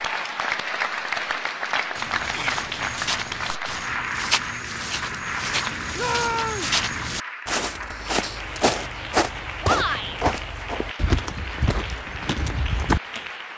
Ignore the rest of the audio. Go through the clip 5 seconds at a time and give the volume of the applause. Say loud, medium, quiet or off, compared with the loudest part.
loud, medium, medium.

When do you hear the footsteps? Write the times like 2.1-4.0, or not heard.
1.9-13.2.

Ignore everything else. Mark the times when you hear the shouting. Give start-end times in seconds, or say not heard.
2.2-2.6, 6.0-6.8, 9.6-10.2.